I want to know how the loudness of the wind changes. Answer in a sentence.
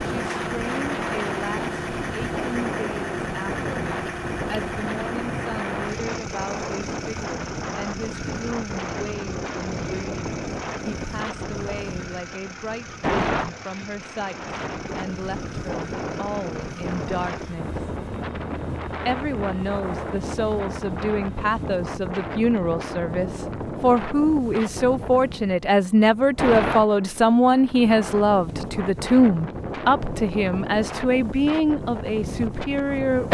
The loudness of the wind stays about the same.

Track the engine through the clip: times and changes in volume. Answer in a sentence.
The engine can be heard from 0.0 to 21.8 s, getting quieter.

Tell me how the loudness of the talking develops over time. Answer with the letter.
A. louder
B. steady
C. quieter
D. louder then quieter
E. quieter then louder
A.